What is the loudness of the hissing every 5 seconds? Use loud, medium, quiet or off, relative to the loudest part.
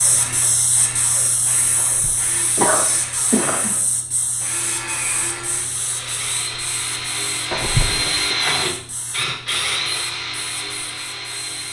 loud, medium, quiet.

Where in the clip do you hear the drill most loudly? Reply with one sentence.
The volume of the drill peaks at 8 seconds.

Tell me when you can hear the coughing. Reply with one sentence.
You can hear the coughing from 1.8 to 3.8 s and from 7.5 to 8.3 s.